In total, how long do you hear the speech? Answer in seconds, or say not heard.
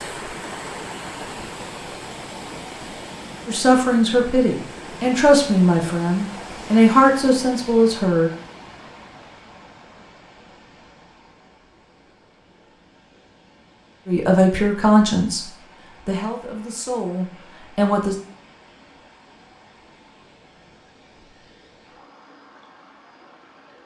9 s.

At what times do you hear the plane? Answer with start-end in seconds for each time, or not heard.
not heard.